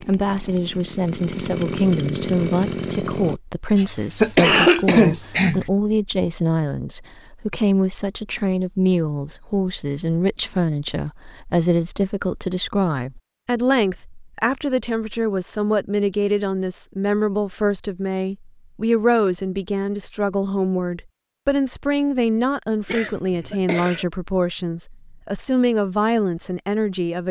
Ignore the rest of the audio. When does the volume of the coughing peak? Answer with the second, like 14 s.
5 s.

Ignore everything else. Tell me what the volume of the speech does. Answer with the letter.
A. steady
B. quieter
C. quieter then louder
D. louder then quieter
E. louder
A.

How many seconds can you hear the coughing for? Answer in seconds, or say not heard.
3 s.